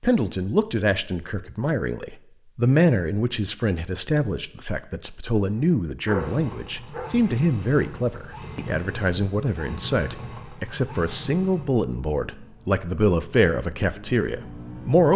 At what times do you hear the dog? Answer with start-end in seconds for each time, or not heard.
5.5-7.0.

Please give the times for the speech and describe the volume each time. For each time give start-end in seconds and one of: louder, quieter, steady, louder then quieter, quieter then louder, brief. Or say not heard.
0.0-15.1 steady.